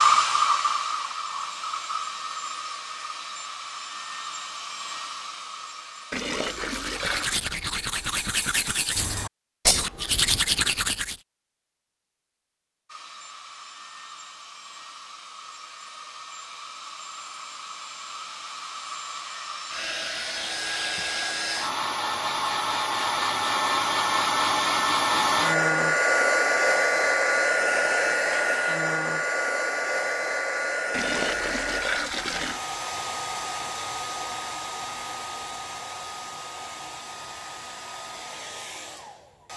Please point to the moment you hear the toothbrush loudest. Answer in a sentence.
The loudest moment of the toothbrush is at 10 seconds.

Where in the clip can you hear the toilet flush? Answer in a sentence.
You can hear the toilet flush from 6.1 to 7.5 s and from 30.9 to 32.6 s.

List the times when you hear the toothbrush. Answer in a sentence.
The toothbrush can be heard from 6.8 to 11.2 s.